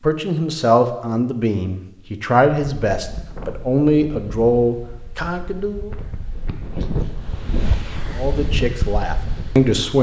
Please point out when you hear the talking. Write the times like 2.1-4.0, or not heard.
0.0-5.9, 8.2-9.9.